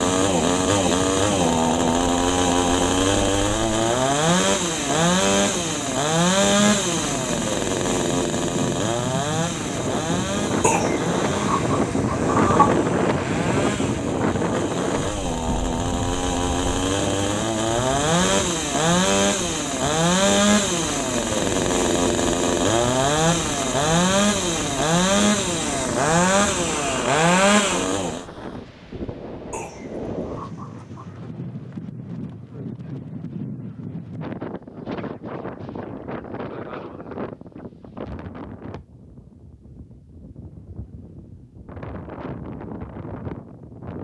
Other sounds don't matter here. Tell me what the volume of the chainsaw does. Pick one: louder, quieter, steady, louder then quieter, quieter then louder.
quieter then louder.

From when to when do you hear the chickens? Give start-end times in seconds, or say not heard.
10.6-12.7, 29.5-31.2.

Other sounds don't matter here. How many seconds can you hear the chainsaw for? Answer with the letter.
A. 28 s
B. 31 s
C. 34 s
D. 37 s
A.